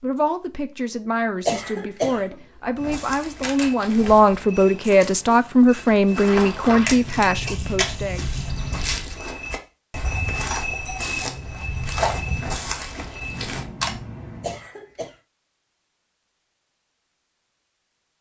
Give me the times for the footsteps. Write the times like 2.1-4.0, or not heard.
2.8-13.7.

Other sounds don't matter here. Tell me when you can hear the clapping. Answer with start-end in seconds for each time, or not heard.
not heard.